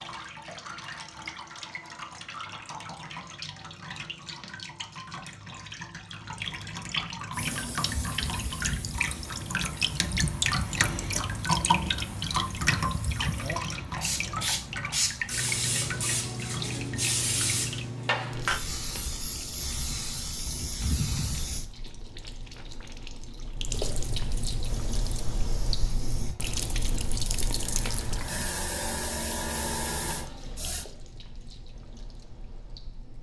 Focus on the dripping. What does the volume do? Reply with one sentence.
The loudness of the dripping goes up, then down.